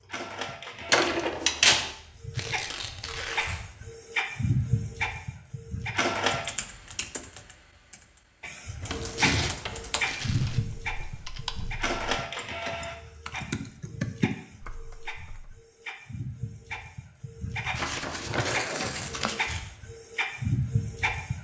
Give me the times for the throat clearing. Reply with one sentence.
You can't hear the throat clearing here.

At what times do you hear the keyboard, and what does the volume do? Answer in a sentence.
The keyboard can be heard from 6.3 to 15.6 s, getting louder.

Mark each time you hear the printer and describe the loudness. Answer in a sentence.
The printer can be heard from 0.0 to 6.5 s, getting louder; and from 8.4 to 21.3 s, getting quieter then louder.